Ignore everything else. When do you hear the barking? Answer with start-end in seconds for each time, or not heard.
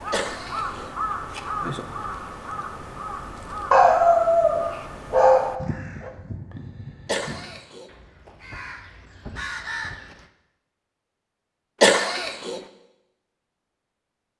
3.7-6.1.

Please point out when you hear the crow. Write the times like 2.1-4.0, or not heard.
0.0-10.2.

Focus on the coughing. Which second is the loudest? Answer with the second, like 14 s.
12 s.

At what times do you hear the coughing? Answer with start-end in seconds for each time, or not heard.
0.1-0.9, 7.0-7.9, 11.8-12.6.